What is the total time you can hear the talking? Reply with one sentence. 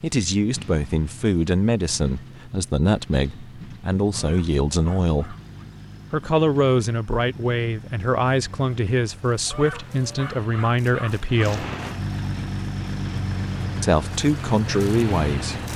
You can hear the talking for 13 seconds altogether.